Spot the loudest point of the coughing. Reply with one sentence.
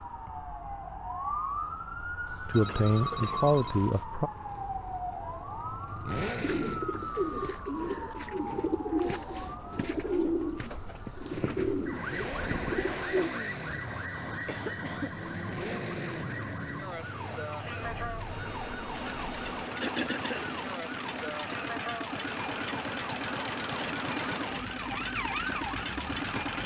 The loudest moment of the coughing is at 20 seconds.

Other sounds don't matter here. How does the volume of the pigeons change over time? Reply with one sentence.
The volume of the pigeons stays about the same.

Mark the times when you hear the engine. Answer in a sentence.
The engine can be heard from 4.0 to 7.2 s and from 11.3 to 26.6 s.